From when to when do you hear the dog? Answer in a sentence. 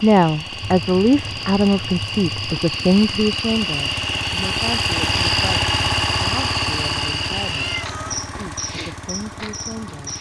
You can't hear the dog here.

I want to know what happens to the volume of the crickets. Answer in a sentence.
The loudness of the crickets goes up, then down.